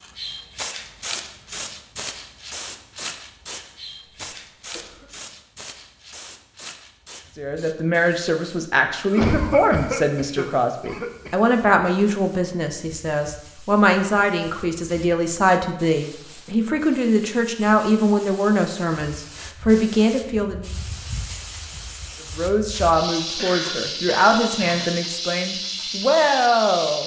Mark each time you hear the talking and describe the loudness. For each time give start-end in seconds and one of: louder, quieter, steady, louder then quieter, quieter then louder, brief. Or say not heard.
7.3-20.7 steady
22.4-27.0 quieter then louder.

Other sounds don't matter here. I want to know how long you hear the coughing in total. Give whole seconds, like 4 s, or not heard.
5 s.